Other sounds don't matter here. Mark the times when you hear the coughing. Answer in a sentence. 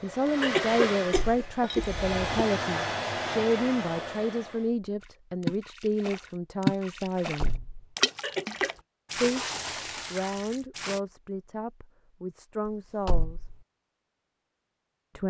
You can hear the coughing from 0.4 to 2.5 s and from 8.2 to 8.8 s.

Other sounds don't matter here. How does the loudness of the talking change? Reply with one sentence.
The loudness of the talking goes down.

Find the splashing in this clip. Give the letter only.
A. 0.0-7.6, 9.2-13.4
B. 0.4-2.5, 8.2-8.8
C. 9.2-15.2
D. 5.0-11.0
D.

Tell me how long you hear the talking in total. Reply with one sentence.
The talking can be heard for 12 seconds in total.